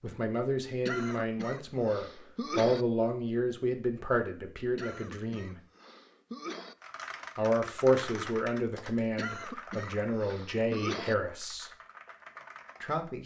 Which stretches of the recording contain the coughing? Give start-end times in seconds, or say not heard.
0.8-2.9, 4.8-6.8, 9.2-11.2.